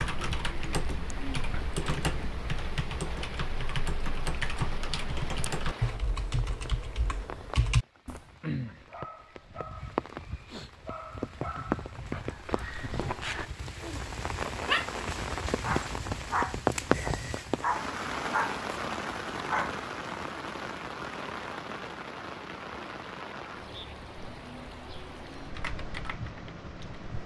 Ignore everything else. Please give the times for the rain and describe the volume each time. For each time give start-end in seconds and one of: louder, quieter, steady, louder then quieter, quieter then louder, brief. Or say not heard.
0.0-27.2 louder then quieter.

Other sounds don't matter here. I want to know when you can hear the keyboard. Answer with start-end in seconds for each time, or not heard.
0.0-8.2, 25.4-27.2.